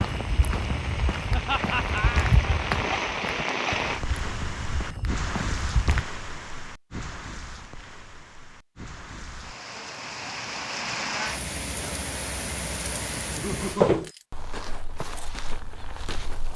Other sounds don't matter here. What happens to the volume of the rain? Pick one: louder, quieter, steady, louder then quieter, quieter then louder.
quieter then louder.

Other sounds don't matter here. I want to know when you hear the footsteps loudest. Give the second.
14 s.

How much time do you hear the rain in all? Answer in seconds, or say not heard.
14 s.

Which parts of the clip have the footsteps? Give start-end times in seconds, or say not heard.
0.0-6.0, 13.6-16.5.